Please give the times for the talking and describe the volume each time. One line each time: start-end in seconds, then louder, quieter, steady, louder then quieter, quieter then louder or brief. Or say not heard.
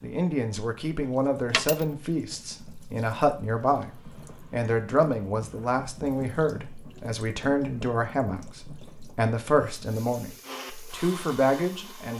0.0-12.1 steady.